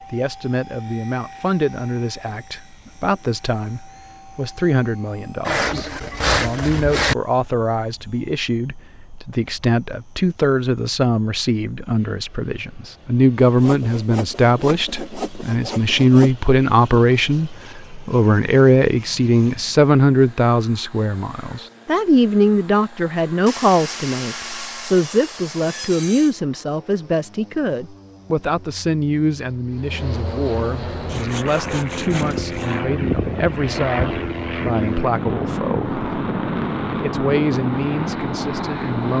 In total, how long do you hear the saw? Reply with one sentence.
You can hear the saw for 9 seconds altogether.